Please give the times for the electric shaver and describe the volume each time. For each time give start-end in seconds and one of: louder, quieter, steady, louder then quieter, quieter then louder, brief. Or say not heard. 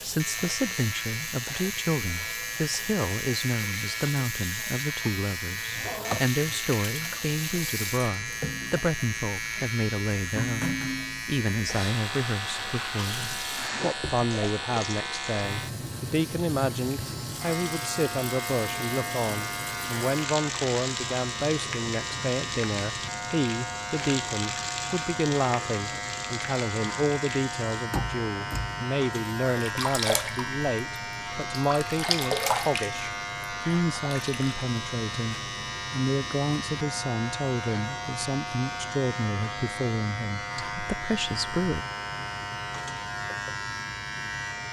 0.0-44.6 steady.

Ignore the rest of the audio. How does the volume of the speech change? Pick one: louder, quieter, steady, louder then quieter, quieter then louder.
steady.